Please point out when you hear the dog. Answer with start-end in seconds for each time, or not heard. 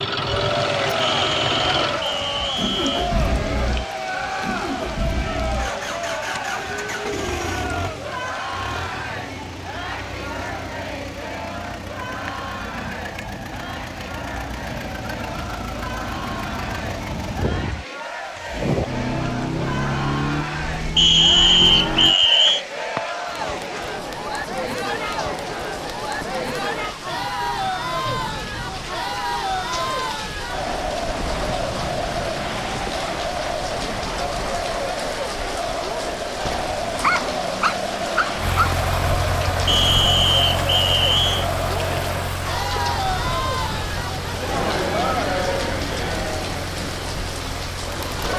37.0-38.8.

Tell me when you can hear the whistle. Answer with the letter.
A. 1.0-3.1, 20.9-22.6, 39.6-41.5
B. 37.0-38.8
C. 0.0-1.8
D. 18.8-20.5
A.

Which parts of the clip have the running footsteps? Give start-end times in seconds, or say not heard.
not heard.